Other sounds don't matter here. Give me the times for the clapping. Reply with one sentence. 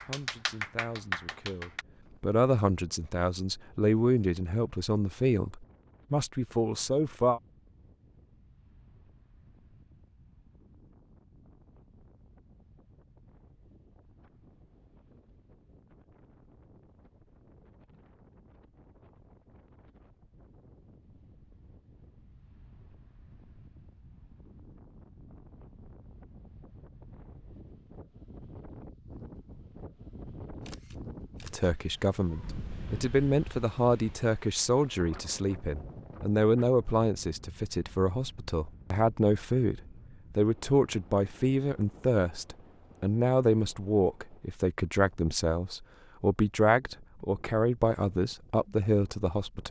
The clapping can be heard from 0.0 to 1.9 s.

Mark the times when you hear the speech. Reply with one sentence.
The speech can be heard from 0.1 to 7.4 s and from 31.4 to 49.6 s.